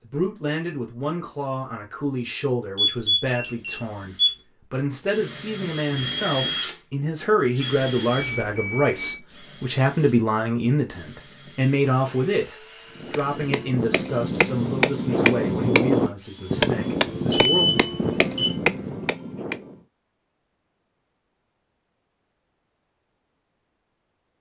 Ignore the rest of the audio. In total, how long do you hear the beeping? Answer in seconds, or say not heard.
4 s.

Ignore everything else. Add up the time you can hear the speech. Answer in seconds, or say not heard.
18 s.